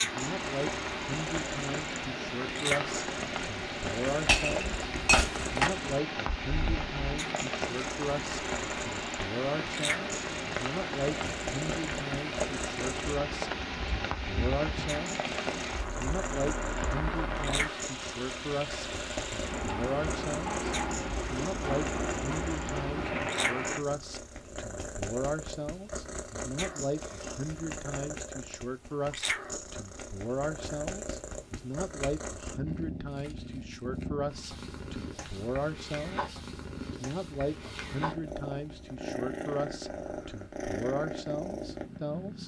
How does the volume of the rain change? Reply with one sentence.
The volume of the rain stays about the same.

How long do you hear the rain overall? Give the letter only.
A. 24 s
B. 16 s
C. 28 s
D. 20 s
A.